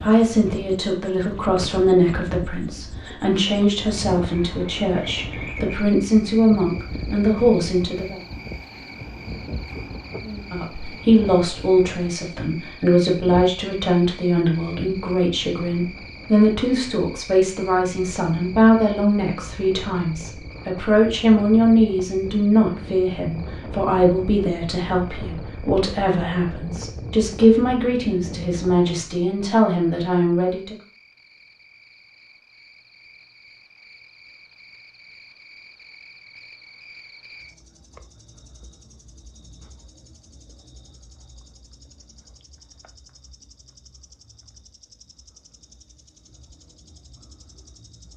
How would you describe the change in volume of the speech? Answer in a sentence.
The loudness of the speech stays about the same.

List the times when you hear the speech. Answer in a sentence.
The speech can be heard from 0.0 to 8.2 s and from 10.2 to 30.8 s.